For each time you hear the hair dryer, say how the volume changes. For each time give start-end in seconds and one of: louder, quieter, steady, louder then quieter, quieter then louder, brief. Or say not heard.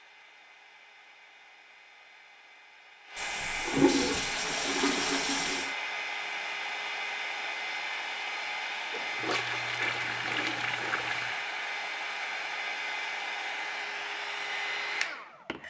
0.0-15.6 louder.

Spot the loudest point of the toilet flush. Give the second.
4 s.